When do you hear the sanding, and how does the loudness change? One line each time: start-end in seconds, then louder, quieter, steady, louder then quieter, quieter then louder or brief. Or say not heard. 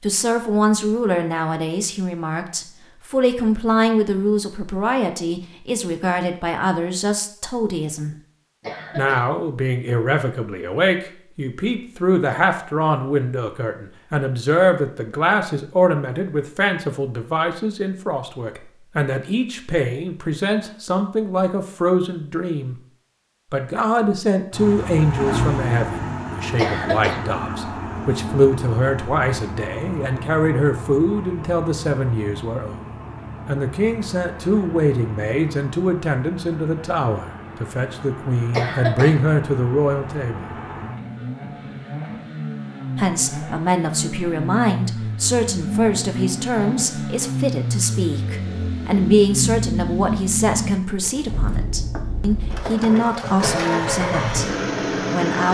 not heard.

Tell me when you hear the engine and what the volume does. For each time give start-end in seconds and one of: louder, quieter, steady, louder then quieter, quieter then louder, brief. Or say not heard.
24.5-55.4 quieter then louder.